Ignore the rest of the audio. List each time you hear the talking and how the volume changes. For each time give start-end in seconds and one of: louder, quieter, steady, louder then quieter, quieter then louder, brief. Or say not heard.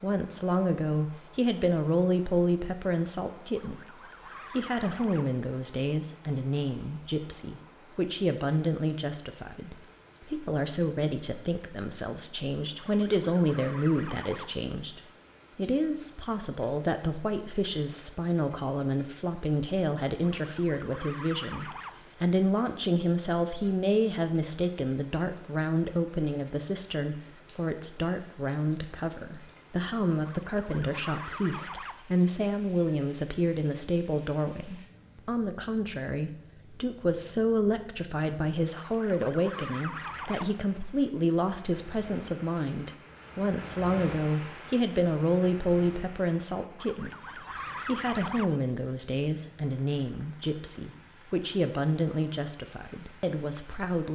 0.0-54.0 steady.